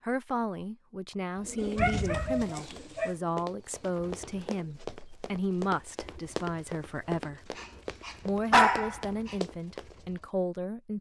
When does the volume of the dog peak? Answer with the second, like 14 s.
9 s.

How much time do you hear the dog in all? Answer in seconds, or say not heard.
3 s.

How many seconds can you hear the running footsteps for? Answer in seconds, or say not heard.
7 s.